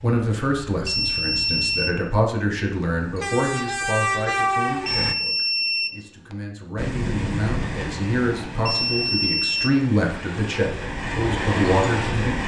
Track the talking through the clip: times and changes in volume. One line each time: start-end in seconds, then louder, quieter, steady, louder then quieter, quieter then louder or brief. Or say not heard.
0.0-12.4 quieter then louder.